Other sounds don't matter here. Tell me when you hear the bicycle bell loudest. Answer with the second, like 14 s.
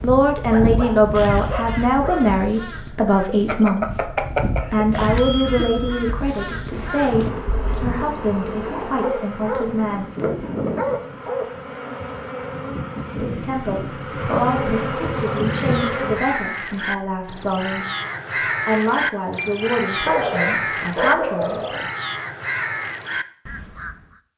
4 s.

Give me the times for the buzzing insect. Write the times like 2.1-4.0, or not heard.
6.7-16.2.